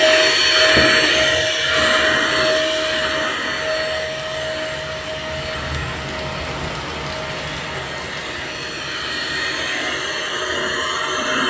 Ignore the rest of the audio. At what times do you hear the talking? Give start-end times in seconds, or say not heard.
not heard.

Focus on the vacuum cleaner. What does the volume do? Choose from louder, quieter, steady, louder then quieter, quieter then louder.
quieter then louder.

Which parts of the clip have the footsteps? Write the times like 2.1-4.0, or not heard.
not heard.